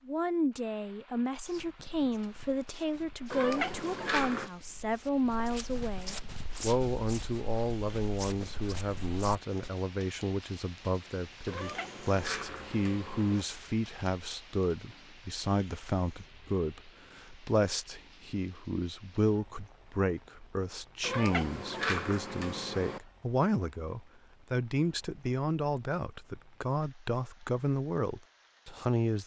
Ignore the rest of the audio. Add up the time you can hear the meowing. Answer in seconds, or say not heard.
5 s.